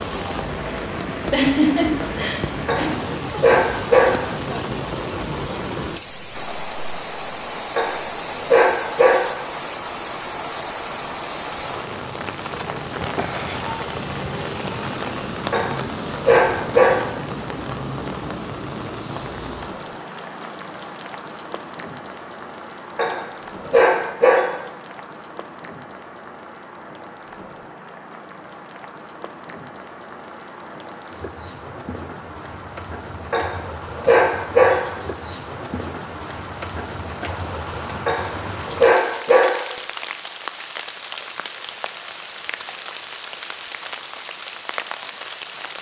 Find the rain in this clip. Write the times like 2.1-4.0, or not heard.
0.0-45.7.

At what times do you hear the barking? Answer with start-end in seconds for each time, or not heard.
2.6-4.3, 7.8-9.3, 15.5-17.1, 22.9-24.6, 33.3-35.0, 38.0-39.6.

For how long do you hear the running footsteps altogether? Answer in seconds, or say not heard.
not heard.